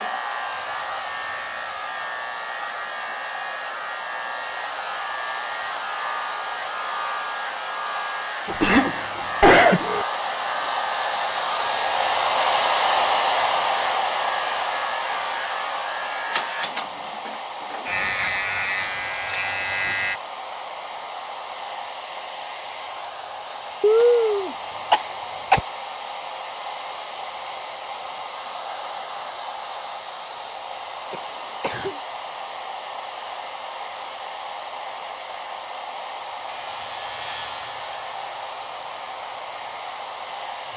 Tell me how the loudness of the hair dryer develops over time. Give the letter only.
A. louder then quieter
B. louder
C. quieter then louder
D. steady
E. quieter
A.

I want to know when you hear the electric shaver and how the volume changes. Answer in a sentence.
The electric shaver can be heard from 0.0 to 20.2 s, at a steady volume; and from 36.5 to 40.7 s, getting quieter.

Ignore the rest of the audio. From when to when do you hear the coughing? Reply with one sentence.
The coughing can be heard from 8.4 to 10.1 s, from 23.8 to 25.6 s and from 31.1 to 31.9 s.